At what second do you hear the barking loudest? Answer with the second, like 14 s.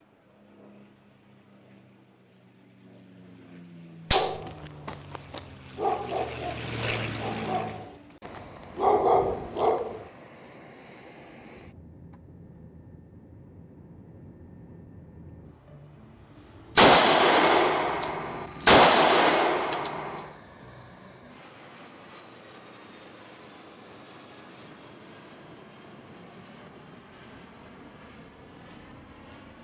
9 s.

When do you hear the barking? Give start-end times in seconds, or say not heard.
4.1-10.1.